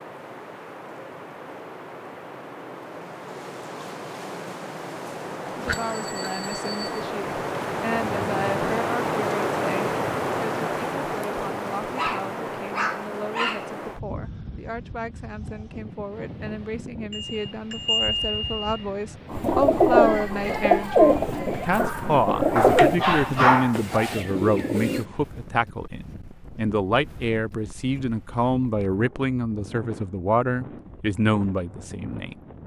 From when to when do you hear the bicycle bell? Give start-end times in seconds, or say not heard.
5.7-7.0, 17.1-18.9.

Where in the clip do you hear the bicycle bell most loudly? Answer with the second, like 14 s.
18 s.